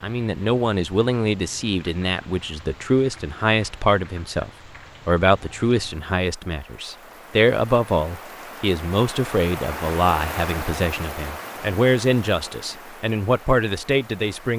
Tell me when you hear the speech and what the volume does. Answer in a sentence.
You can hear the speech from 0.0 to 14.5 s, at a steady volume.